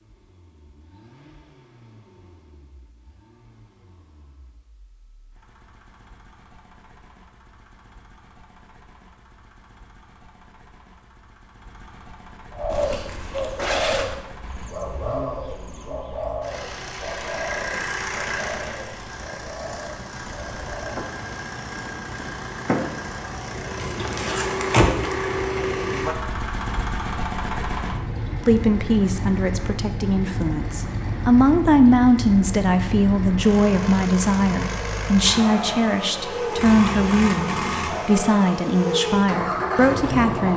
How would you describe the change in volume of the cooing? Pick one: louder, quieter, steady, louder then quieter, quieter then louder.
quieter.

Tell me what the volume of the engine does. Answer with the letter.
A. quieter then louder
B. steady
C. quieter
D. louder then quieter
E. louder
E.